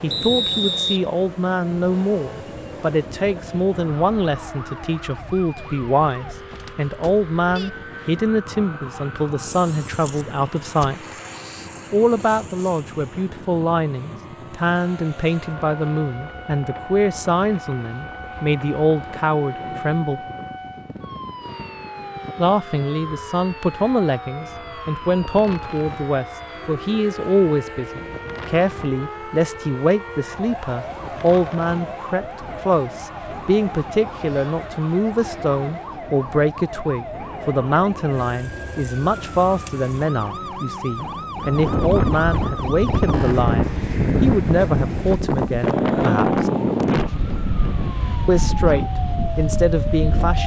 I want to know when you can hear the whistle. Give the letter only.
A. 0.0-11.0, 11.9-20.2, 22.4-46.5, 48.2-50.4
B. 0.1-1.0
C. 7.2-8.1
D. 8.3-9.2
B.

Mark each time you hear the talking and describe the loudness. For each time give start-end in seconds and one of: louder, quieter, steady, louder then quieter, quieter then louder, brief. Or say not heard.
0.0-11.0 steady
11.9-20.2 steady
22.4-46.5 steady
48.2-50.4 brief.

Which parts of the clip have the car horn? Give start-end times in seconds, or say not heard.
not heard.